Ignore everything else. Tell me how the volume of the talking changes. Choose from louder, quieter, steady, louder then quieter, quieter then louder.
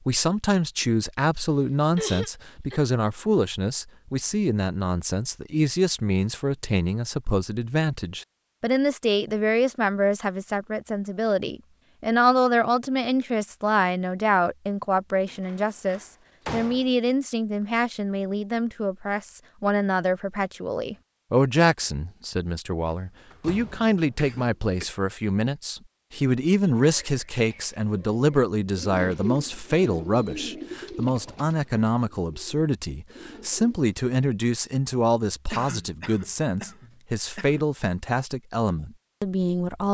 steady.